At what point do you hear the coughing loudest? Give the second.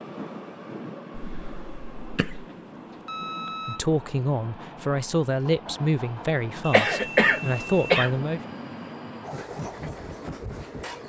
7 s.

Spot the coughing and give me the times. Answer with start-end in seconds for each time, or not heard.
1.1-2.5, 6.7-8.2.